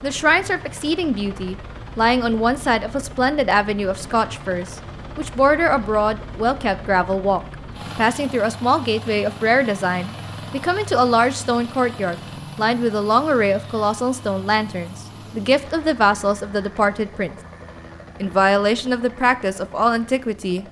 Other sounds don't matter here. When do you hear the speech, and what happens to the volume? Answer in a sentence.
The speech can be heard from 0.0 to 17.4 s, at a steady volume; and briefly from 18.2 to 20.6 s.